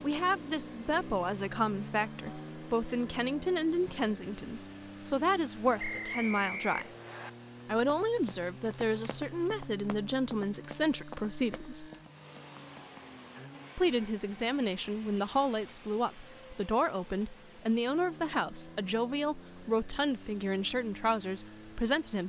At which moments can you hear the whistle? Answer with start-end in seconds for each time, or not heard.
5.8-7.3.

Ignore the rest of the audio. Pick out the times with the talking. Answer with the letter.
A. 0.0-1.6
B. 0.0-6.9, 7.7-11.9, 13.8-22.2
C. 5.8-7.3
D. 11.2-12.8
B.